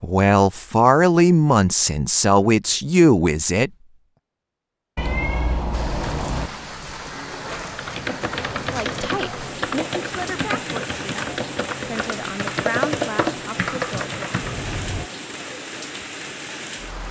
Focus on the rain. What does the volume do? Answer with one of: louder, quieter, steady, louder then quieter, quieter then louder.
steady.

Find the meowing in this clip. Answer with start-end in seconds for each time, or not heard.
5.0-6.5, 14.4-15.1.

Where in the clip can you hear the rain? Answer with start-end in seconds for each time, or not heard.
5.7-17.0.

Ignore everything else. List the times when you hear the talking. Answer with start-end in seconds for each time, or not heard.
0.0-3.7, 8.5-14.2.